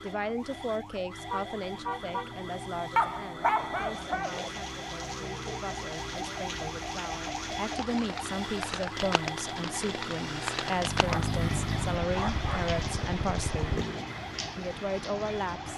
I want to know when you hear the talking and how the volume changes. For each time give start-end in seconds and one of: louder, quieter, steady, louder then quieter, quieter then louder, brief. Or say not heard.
0.0-13.8 quieter then louder
14.6-15.7 brief.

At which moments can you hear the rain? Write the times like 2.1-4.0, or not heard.
3.9-15.7.